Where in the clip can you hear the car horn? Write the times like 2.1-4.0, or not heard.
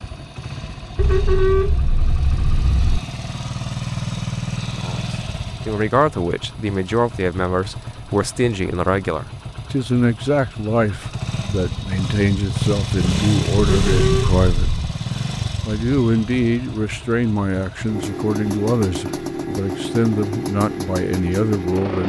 0.9-3.0, 13.6-14.9.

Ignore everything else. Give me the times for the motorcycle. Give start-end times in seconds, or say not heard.
0.0-22.0.